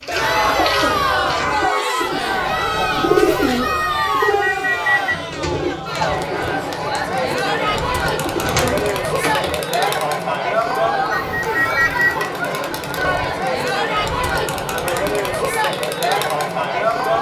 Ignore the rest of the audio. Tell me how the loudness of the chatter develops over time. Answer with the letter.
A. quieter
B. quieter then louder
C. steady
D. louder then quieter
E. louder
C.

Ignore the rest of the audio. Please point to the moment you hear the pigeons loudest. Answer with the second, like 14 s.
3 s.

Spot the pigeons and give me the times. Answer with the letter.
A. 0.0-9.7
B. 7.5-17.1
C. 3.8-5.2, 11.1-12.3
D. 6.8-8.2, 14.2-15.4
A.